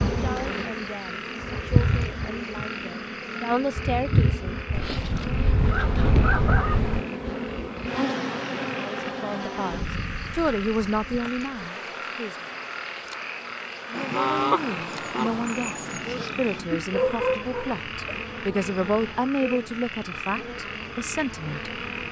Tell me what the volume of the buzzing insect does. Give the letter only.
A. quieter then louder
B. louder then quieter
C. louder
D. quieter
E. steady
D.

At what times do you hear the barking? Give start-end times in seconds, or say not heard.
16.7-18.2.